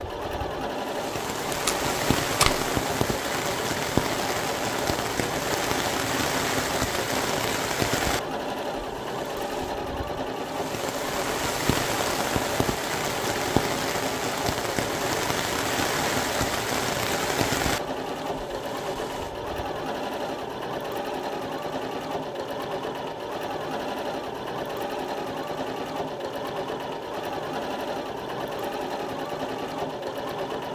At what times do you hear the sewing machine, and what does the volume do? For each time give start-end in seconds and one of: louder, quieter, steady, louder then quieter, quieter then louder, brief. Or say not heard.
0.0-30.7 steady.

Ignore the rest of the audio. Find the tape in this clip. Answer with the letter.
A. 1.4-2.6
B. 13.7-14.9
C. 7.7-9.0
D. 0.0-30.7
A.